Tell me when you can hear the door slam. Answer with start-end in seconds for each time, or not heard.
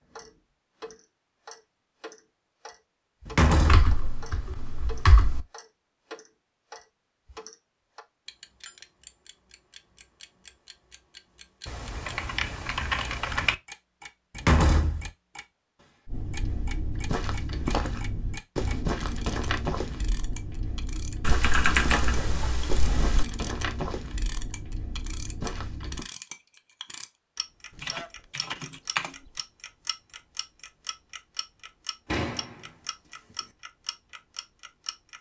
3.2-4.0, 14.3-15.1, 32.1-32.5.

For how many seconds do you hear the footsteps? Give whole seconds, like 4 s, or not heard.
10 s.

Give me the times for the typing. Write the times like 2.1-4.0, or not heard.
3.6-5.5, 11.7-13.6, 21.2-23.2, 27.8-29.1.